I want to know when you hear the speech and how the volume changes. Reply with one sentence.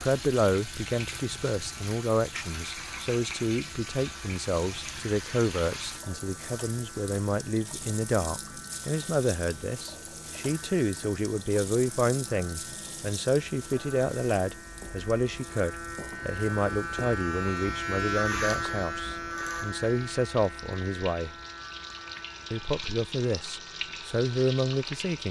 You can hear the speech from 0.0 to 21.4 s, at a steady volume; and briefly from 22.5 to 25.2 s.